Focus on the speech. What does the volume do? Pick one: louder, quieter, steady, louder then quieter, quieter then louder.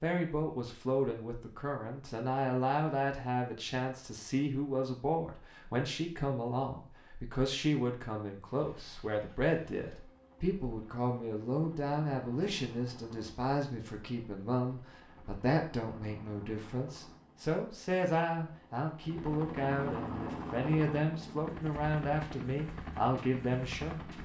steady.